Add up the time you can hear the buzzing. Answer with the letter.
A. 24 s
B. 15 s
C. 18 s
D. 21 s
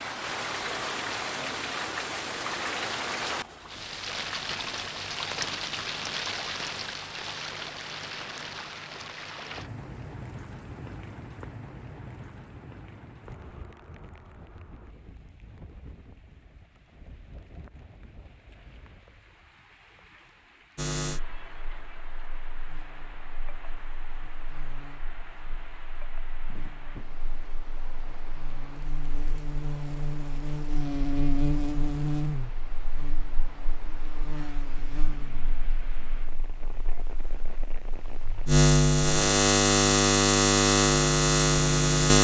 D.